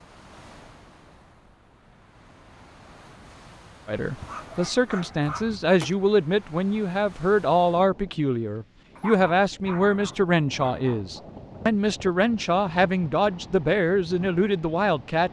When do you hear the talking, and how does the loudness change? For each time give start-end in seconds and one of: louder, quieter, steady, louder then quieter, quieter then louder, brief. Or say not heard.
3.9-15.2 steady.